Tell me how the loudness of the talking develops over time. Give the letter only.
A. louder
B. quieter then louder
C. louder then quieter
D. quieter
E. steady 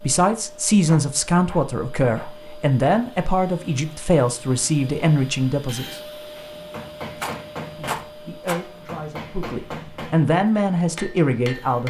B.